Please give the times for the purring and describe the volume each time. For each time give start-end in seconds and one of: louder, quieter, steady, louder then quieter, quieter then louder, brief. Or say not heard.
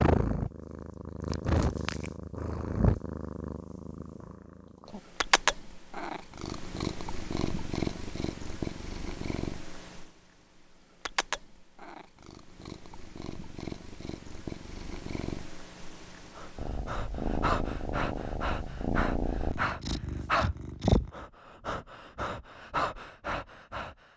0.0-21.1 quieter then louder.